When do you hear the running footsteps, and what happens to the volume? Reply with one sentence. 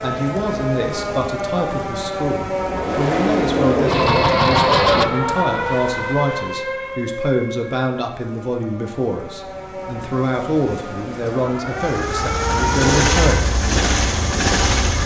The running footsteps can't be heard in this clip.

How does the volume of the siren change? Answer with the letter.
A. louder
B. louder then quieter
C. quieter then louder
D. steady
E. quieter
C.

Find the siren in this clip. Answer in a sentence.
You can hear the siren from 0.0 to 13.4 s.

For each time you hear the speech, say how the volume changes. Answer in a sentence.
The speech can be heard from 0.0 to 13.7 s, at a steady volume.